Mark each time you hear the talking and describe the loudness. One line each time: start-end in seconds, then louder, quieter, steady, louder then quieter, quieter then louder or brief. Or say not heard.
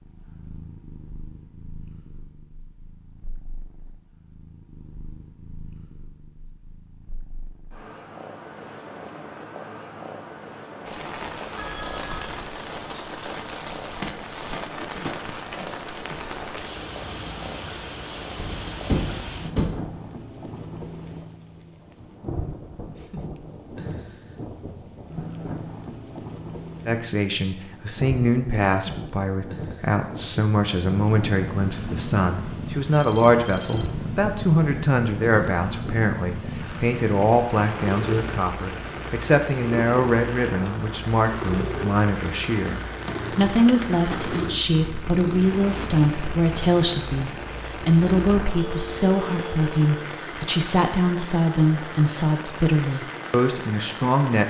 26.9-54.4 steady.